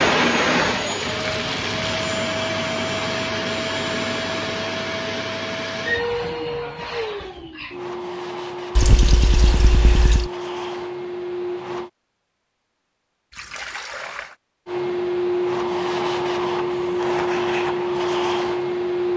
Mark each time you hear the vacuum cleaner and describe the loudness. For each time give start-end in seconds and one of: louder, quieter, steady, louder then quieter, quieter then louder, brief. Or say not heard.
0.0-11.9 quieter
14.7-19.1 steady.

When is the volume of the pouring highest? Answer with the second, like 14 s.
9 s.